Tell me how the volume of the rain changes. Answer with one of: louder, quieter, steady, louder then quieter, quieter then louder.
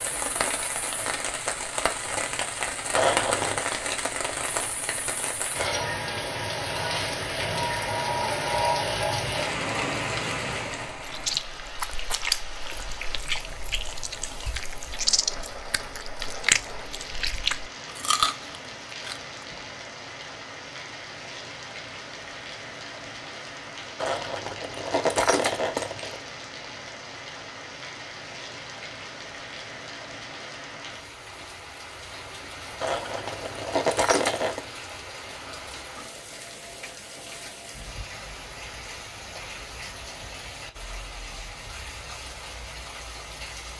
quieter.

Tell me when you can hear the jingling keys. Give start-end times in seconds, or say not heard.
3.0-3.6, 23.9-26.2, 32.8-34.6.